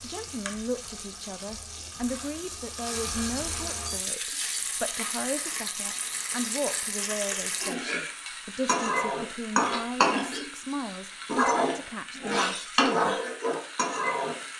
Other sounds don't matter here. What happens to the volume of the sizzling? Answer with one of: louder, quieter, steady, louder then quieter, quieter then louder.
louder.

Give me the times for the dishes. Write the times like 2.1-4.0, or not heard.
not heard.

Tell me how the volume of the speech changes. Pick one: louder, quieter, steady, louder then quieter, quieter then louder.
steady.